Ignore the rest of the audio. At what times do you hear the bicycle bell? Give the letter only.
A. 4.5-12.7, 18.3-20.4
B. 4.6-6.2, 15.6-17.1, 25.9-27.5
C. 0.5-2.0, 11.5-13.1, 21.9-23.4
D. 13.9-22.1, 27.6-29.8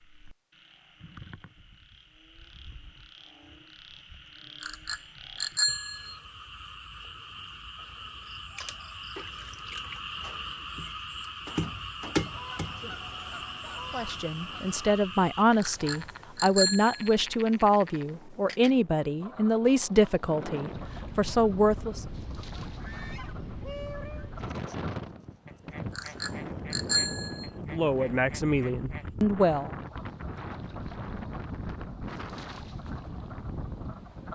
B.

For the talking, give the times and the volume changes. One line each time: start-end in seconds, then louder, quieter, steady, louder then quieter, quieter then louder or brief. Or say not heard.
13.9-22.1 steady
27.6-29.8 brief.